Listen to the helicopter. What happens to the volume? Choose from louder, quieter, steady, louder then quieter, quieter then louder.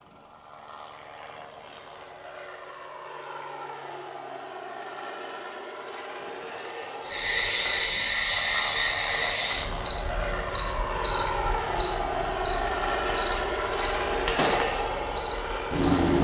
louder.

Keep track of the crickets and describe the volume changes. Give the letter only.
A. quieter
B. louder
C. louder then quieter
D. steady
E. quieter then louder
A.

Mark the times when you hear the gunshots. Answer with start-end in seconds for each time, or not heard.
14.3-14.8.